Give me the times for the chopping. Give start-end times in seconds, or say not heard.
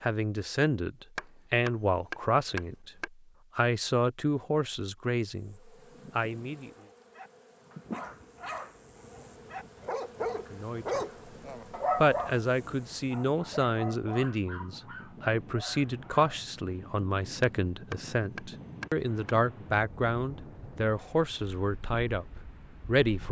1.1-3.1, 17.4-19.4.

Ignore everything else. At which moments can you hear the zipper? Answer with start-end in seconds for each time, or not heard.
not heard.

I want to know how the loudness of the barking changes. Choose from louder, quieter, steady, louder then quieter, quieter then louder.
louder then quieter.